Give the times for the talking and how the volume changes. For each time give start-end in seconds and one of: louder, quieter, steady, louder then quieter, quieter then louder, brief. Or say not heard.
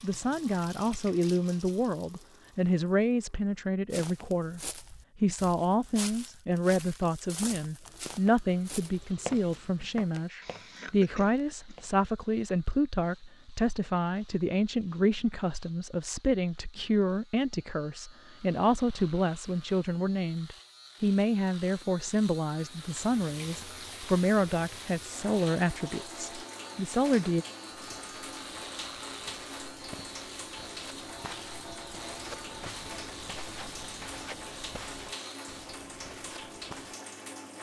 0.0-27.4 steady.